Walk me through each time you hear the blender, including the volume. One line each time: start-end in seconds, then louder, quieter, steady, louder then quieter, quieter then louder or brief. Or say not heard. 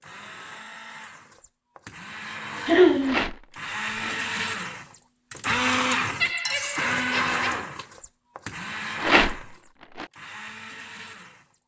0.0-11.6 louder then quieter.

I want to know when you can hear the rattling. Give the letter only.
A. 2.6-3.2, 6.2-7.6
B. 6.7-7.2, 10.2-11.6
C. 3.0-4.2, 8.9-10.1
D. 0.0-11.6
C.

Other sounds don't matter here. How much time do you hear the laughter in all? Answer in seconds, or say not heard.
2 s.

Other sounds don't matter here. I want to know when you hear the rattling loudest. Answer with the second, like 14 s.
9 s.